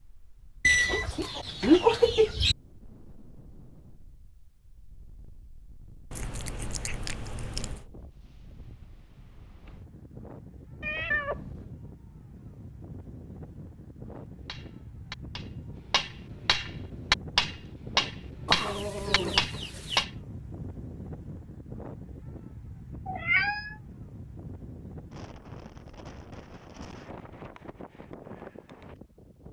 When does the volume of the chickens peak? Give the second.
2 s.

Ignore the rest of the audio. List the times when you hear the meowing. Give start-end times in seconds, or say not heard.
6.1-7.8, 10.8-11.7, 23.1-23.8.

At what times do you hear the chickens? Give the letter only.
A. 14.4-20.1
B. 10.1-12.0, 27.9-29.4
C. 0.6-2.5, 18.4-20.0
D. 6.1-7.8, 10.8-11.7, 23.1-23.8
C.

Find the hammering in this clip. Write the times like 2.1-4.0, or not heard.
14.4-20.1.